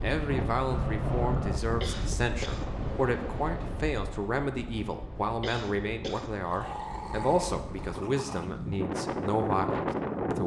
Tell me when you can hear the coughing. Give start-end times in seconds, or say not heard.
1.8-2.8, 5.4-6.8.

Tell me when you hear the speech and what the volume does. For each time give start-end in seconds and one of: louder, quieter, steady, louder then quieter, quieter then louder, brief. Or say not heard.
0.0-10.4 steady.